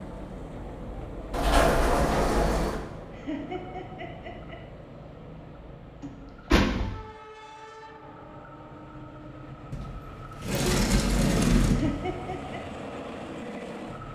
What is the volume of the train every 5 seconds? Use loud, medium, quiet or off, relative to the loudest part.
loud, medium, loud.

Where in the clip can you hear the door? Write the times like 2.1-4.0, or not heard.
1.3-2.8, 6.0-7.0, 9.7-12.2.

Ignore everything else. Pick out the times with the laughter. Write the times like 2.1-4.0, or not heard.
3.1-4.6, 11.7-12.6.